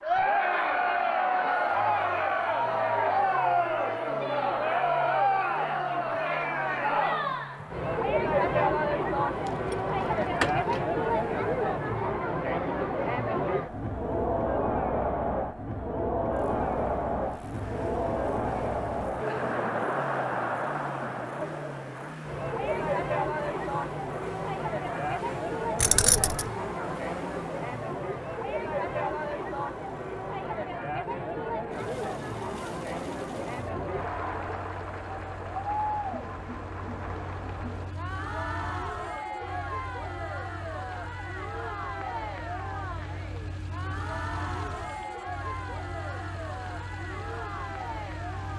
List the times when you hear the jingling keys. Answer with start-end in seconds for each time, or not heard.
9.4-10.8, 25.8-26.4.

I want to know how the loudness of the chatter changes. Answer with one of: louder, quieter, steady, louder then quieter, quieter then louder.
quieter.